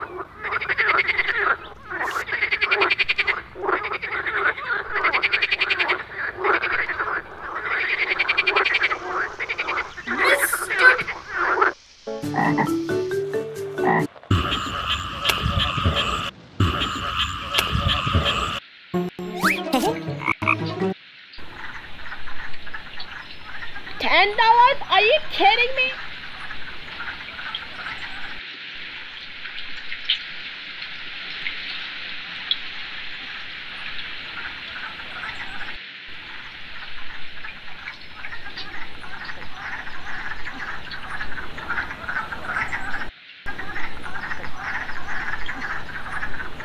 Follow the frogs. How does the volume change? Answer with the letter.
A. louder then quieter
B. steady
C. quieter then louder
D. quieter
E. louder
C.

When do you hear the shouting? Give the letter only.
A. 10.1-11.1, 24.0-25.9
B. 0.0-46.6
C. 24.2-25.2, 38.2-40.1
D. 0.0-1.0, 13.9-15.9
A.